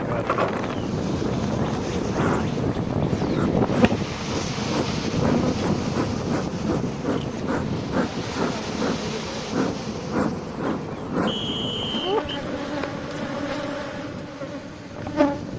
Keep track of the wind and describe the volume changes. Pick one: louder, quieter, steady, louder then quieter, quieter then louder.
quieter.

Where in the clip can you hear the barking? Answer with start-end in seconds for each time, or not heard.
not heard.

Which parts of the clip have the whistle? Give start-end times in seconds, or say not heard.
11.2-12.4.